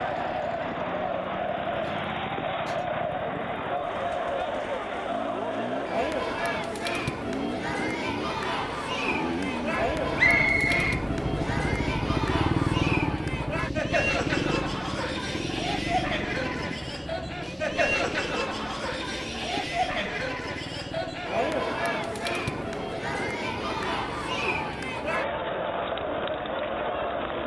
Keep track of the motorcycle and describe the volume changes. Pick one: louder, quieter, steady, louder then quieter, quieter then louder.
louder then quieter.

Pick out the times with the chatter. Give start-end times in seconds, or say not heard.
0.0-27.4.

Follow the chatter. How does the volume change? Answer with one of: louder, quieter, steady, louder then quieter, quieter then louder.
steady.